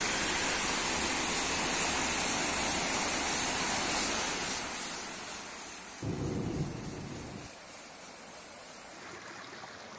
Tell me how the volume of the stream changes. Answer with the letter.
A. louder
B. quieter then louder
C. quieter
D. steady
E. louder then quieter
C.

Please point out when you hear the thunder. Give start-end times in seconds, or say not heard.
6.0-7.5.